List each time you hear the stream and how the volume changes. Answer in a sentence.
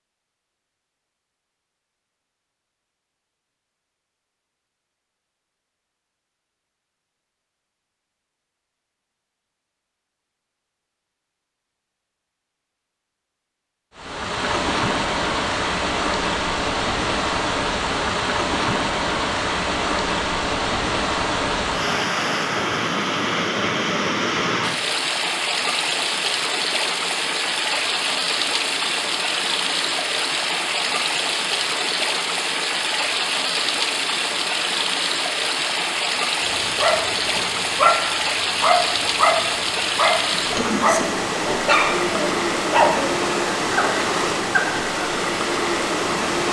You can hear the stream from 13.9 to 46.4 s, at a steady volume.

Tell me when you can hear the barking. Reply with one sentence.
The barking can be heard from 36.5 to 44.8 s.